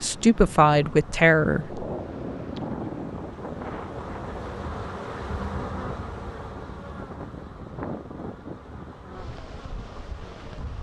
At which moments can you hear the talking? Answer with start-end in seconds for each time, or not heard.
0.0-1.9.